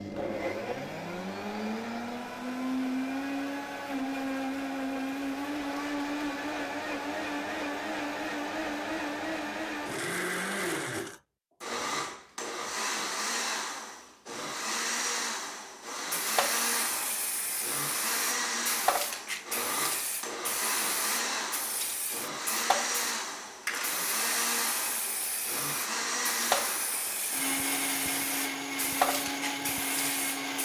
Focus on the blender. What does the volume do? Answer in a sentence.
The volume of the blender stays about the same.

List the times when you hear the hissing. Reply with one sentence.
The hissing can be heard from 16.1 to 30.6 s.